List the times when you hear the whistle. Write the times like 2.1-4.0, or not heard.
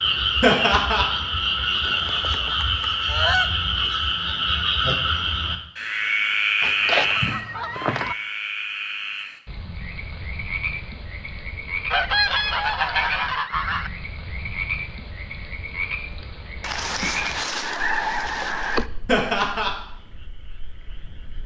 not heard.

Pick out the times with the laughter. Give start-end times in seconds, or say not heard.
0.4-1.1, 19.1-19.7.